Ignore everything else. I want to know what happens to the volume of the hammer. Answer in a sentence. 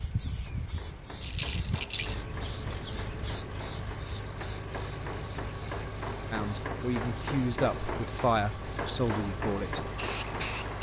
The volume of the hammer goes up.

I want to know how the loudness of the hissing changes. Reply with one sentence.
The volume of the hissing goes down, then up.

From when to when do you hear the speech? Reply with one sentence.
You can hear the speech from 6.3 to 9.8 s.